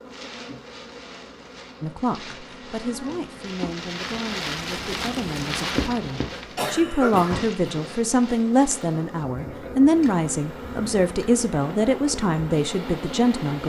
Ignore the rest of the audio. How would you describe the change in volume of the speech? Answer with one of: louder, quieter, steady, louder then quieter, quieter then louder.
louder.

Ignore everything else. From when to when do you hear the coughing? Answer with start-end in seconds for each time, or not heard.
6.3-7.9.